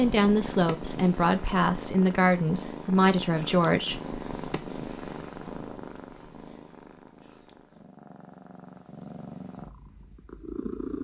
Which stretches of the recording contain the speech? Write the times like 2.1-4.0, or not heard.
0.0-4.1.